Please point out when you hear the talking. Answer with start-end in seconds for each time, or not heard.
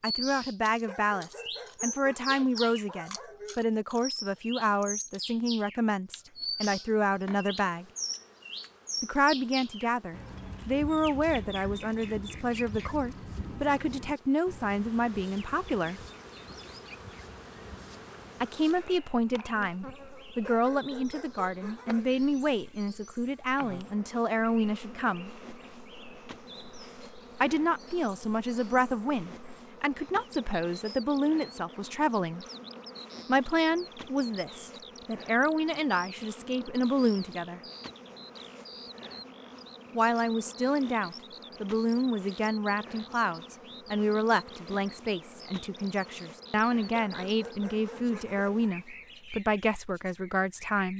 0.0-7.8, 9.0-16.0, 18.4-25.3, 27.4-32.5, 33.2-37.6, 39.9-50.9.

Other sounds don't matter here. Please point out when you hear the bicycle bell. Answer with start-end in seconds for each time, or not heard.
not heard.